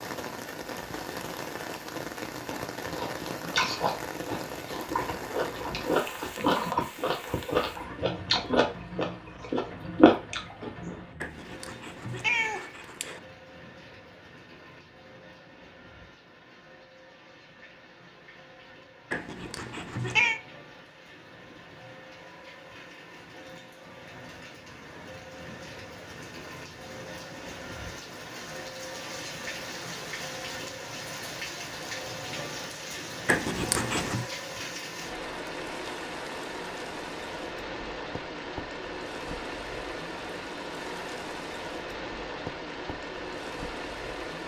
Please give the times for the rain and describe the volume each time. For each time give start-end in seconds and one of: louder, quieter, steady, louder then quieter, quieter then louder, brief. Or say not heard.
0.0-44.4 quieter then louder.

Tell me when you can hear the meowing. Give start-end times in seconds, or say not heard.
11.2-13.2, 19.1-20.4, 33.2-34.2.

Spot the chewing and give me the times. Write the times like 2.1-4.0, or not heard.
2.4-10.9.